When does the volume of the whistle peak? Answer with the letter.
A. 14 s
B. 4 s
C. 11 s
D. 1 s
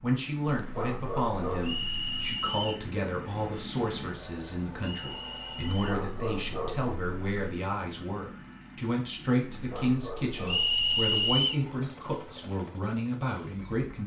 C.